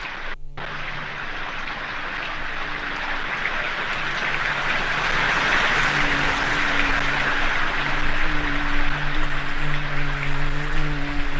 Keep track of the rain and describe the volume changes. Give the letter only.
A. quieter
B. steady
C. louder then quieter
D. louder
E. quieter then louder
C.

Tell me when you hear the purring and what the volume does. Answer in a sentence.
The purring can't be heard in this clip.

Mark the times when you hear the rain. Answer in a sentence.
You can hear the rain from 0.0 to 11.3 s.